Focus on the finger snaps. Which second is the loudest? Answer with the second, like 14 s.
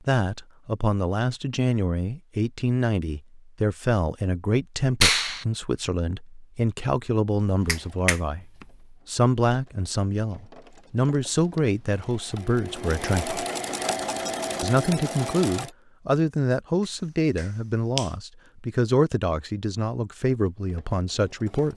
5 s.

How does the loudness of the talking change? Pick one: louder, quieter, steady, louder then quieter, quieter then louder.
steady.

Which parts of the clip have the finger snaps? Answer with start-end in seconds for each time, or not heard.
5.0-5.5, 7.7-8.7, 17.4-18.1.